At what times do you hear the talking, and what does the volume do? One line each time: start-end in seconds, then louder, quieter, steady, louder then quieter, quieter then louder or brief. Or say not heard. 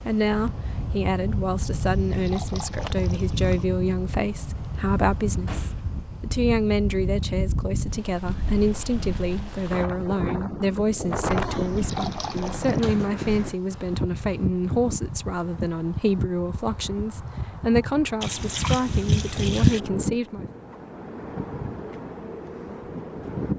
0.1-20.4 steady.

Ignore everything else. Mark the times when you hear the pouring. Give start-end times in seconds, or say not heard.
1.9-3.6, 11.5-12.8, 18.2-19.8.